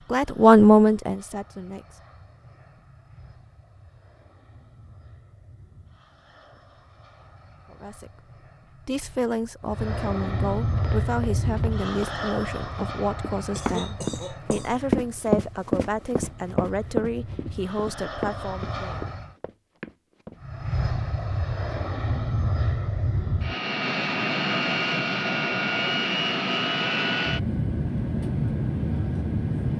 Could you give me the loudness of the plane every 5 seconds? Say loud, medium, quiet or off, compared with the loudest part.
quiet, quiet, medium, quiet, loud, loud.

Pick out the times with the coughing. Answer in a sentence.
The coughing can be heard from 13.6 to 14.8 s.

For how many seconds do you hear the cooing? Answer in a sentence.
You can't hear the cooing here.